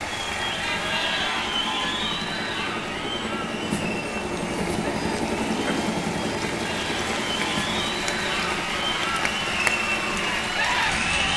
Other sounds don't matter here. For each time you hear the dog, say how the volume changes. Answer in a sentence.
The dog can't be heard in this clip.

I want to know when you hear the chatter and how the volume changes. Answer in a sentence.
You can hear the chatter from 0.0 to 11.3 s, getting quieter then louder.